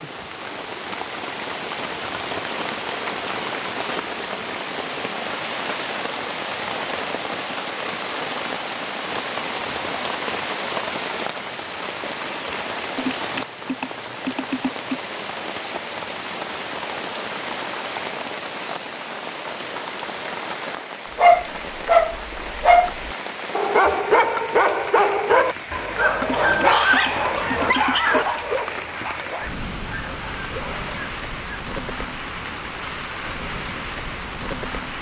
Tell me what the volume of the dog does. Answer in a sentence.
The volume of the dog goes down.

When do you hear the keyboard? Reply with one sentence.
You can hear the keyboard from 12.9 to 15.0 s and from 26.2 to 28.2 s.